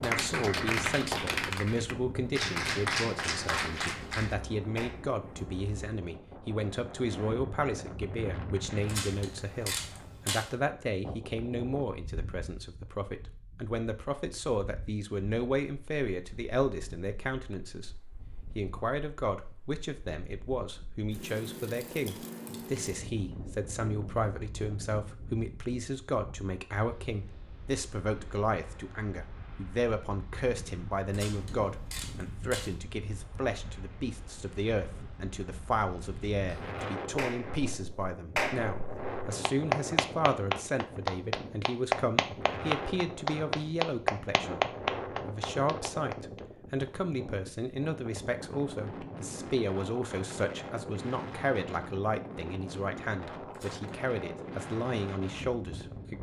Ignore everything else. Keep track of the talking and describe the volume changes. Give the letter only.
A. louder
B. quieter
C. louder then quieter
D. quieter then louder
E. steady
E.